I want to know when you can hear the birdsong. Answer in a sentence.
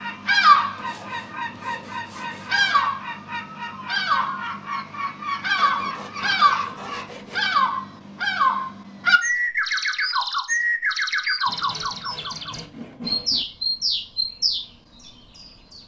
The birdsong can be heard from 0.0 to 15.8 s.